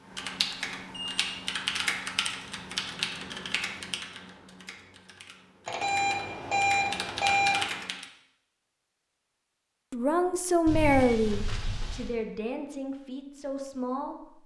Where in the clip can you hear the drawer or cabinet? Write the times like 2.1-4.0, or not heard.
not heard.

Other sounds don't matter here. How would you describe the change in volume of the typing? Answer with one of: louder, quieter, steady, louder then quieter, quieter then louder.
quieter then louder.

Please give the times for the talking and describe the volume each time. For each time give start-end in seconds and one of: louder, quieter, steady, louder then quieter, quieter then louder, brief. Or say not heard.
9.9-14.4 quieter.